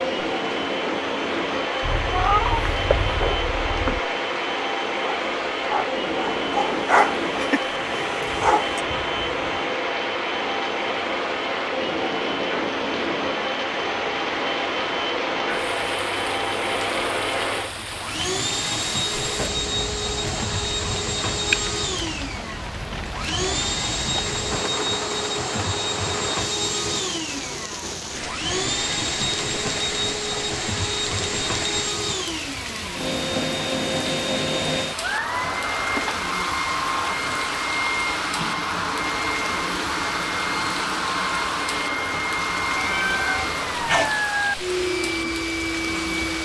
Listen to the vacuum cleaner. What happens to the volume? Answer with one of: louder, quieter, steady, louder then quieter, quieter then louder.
steady.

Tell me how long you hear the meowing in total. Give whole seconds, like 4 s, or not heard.
2 s.